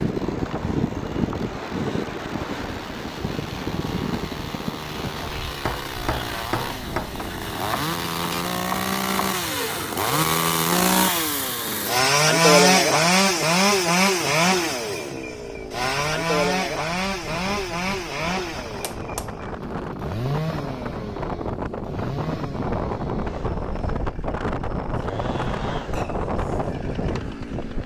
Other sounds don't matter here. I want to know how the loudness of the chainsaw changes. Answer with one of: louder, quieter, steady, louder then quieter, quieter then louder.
louder then quieter.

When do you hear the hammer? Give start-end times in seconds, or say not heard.
5.5-7.1, 18.8-19.3.